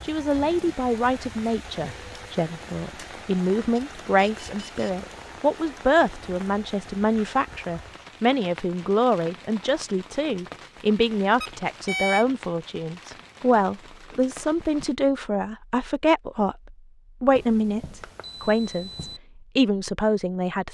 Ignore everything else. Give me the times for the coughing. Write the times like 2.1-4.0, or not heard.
not heard.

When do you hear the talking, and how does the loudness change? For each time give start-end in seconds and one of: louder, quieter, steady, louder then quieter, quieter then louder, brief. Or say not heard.
0.0-20.6 steady.